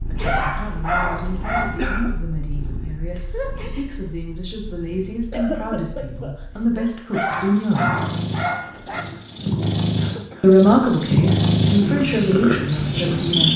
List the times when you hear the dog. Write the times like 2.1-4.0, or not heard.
0.2-1.8, 7.1-9.1.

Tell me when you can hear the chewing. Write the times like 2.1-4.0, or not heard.
not heard.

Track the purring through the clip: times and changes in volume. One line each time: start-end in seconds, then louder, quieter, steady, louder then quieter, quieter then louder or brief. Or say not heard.
0.0-13.5 louder.